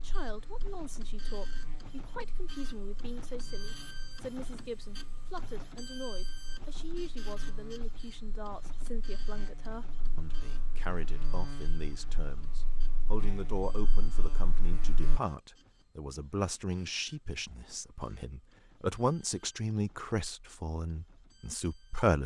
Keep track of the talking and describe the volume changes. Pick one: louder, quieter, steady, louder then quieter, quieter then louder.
louder.